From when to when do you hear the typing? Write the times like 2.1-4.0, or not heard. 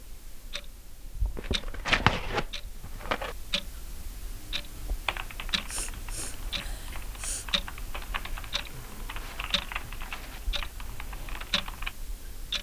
5.0-11.9.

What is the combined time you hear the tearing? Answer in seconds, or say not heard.
4 s.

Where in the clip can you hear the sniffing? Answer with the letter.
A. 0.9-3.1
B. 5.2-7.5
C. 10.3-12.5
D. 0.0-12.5
B.